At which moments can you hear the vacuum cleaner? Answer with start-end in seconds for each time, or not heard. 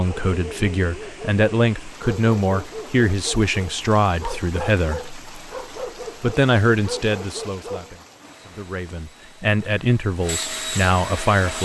8.2-11.6.